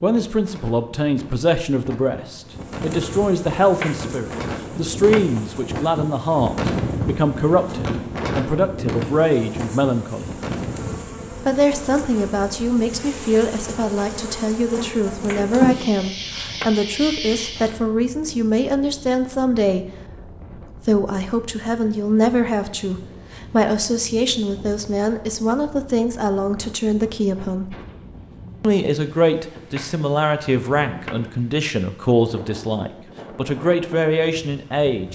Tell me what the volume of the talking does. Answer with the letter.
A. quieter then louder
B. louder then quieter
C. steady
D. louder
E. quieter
C.